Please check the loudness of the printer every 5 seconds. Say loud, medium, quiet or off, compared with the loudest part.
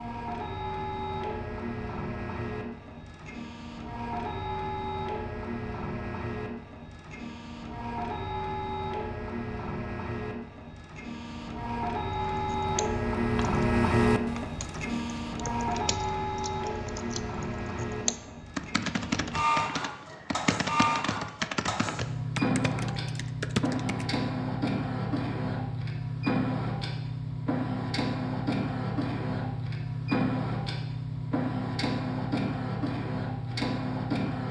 medium, medium, loud, loud, loud, loud, loud.